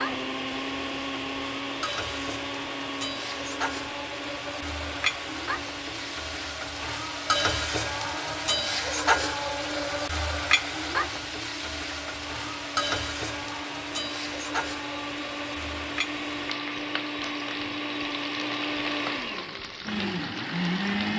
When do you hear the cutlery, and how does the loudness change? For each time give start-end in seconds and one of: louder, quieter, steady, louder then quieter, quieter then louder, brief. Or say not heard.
not heard.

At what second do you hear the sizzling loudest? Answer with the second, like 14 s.
9 s.